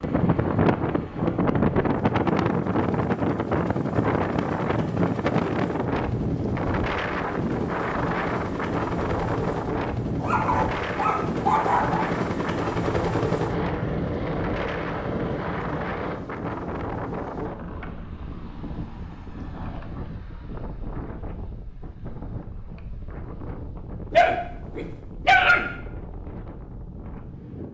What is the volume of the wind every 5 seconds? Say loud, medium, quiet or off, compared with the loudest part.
loud, loud, medium, medium, quiet, quiet.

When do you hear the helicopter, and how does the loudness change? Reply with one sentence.
The helicopter can be heard from 0.0 to 16.2 s, getting louder.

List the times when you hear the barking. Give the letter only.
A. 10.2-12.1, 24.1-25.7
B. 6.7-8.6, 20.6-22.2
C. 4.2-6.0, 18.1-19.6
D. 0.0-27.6
A.